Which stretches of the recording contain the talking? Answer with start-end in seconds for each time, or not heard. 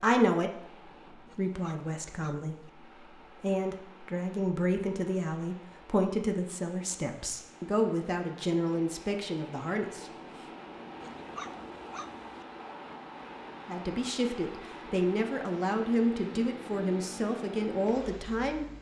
0.0-10.2, 13.7-18.6.